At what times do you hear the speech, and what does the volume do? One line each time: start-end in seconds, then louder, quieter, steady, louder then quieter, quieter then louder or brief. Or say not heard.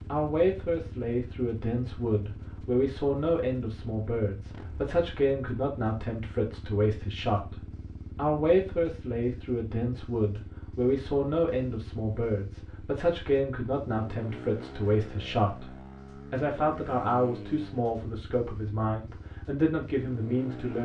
0.1-20.8 steady.